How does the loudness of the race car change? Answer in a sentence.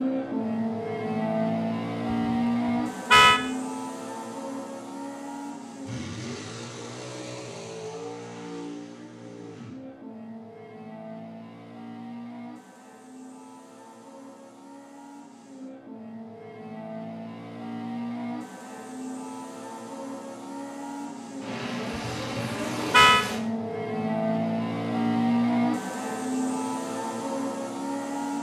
The loudness of the race car goes down, then up.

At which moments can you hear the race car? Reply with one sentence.
The race car can be heard from 0.0 to 28.3 s.